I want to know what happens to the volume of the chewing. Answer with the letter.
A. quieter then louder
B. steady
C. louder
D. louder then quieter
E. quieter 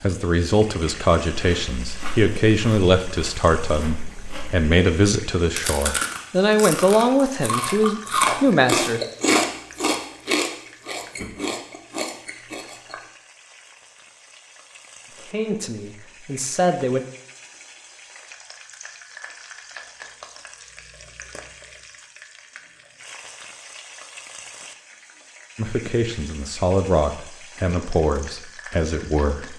D.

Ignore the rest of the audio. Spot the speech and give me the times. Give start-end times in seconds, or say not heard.
0.0-9.0, 15.2-17.1, 25.6-29.5.